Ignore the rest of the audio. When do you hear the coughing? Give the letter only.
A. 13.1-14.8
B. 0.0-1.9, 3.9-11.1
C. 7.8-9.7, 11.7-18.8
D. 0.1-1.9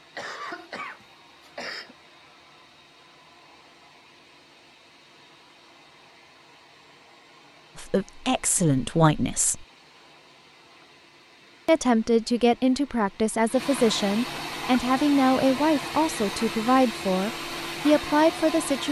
D.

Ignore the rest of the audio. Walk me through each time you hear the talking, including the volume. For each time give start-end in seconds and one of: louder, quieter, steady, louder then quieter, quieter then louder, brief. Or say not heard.
7.8-9.7 brief
11.7-18.8 steady.